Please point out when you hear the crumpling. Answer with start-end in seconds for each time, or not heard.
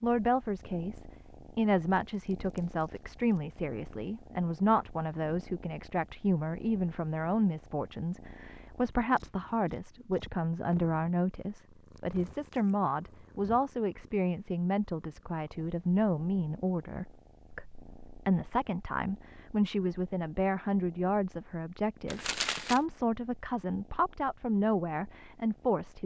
2.1-3.4, 22.1-22.8.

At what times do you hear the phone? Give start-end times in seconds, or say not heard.
not heard.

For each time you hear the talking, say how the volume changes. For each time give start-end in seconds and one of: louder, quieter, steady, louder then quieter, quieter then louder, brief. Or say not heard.
0.0-26.0 steady.